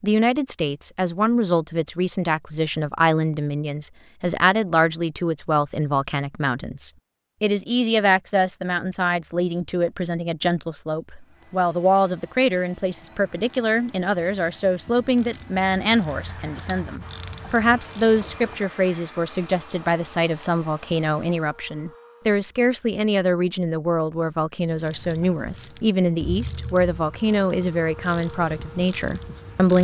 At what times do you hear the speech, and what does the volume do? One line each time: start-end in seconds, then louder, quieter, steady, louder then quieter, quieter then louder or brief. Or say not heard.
0.0-29.7 steady.